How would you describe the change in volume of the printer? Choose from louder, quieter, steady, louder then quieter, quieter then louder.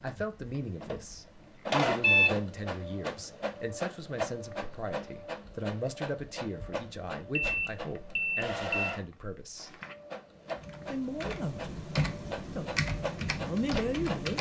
quieter.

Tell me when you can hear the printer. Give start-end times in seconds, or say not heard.
0.1-14.3.